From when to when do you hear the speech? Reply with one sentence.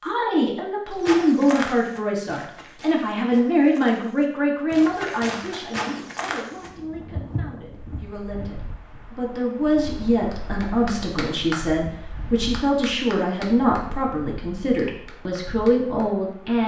You can hear the speech from 0.0 to 16.6 s.